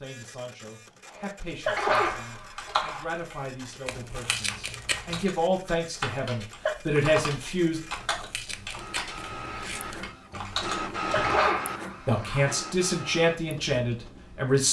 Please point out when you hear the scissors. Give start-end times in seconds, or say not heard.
3.9-5.3, 7.9-10.0.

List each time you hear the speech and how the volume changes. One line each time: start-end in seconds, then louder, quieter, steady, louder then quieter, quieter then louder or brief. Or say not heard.
0.0-7.8 louder
12.1-14.6 brief.